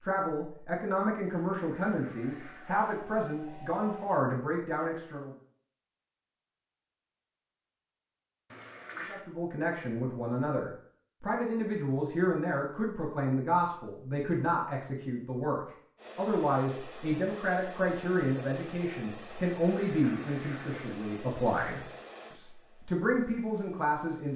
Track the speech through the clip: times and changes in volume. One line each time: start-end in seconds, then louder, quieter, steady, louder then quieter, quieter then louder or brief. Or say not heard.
0.0-5.3 steady
9.1-24.3 steady.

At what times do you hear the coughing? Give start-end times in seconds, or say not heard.
not heard.